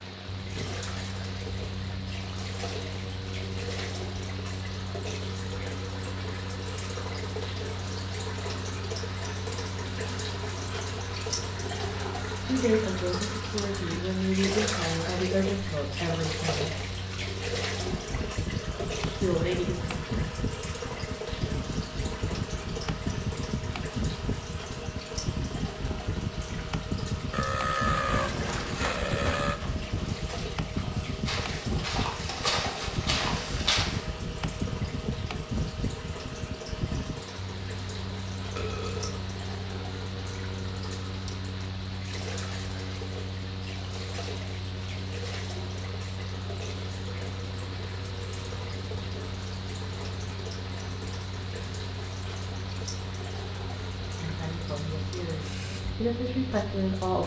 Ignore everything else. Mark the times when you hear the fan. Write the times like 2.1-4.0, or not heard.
0.0-57.2.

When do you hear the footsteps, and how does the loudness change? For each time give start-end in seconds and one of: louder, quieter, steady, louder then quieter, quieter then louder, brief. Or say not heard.
27.9-34.1 quieter then louder.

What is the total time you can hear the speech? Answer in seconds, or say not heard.
8 s.